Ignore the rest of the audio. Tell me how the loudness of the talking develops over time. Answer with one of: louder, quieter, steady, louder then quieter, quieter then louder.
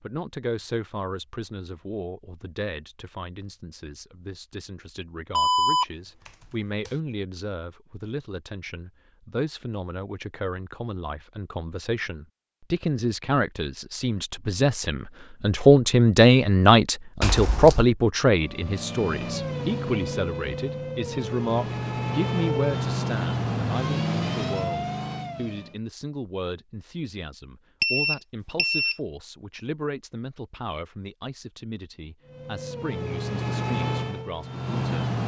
louder then quieter.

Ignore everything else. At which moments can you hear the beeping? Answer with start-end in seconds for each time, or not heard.
5.3-6.9, 17.2-17.8, 27.8-28.9.